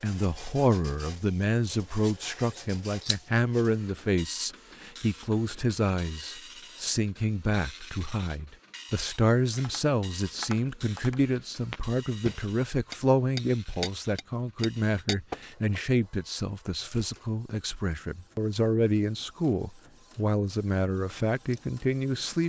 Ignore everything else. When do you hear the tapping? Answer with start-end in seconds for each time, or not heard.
9.6-15.8.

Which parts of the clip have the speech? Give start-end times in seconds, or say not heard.
0.0-22.4.